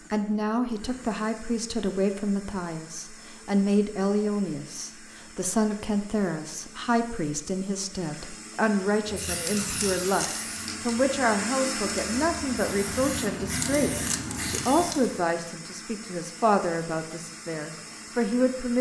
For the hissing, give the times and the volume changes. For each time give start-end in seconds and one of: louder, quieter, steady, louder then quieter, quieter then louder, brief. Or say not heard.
9.1-15.2 quieter then louder.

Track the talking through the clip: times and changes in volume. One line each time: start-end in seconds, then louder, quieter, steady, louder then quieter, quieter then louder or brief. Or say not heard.
0.1-18.7 steady.